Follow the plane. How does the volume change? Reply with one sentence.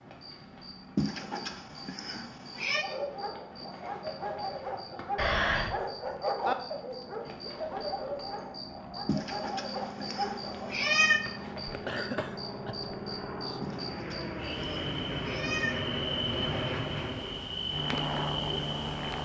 The loudness of the plane goes up.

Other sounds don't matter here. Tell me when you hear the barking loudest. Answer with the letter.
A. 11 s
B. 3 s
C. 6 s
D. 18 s
C.